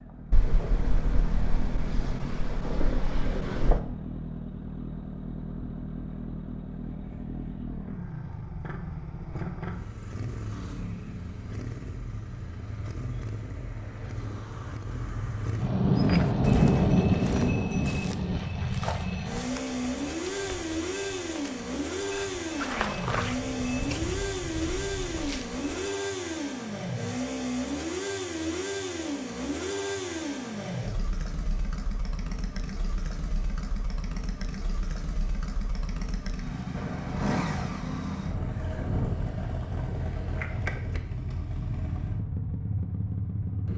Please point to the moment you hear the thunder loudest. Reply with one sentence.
The volume of the thunder peaks at 17 seconds.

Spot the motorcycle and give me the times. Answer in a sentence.
You can hear the motorcycle from 0.0 to 43.7 s.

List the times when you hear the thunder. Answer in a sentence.
You can hear the thunder from 0.3 to 3.8 s, from 15.6 to 18.4 s and from 36.7 to 40.4 s.